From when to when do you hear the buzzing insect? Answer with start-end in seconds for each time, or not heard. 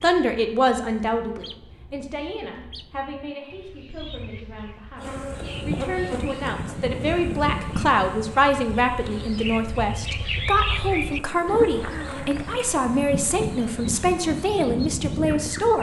5.0-15.7.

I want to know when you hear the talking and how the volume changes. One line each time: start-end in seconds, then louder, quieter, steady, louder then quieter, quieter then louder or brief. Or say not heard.
0.0-15.7 quieter then louder.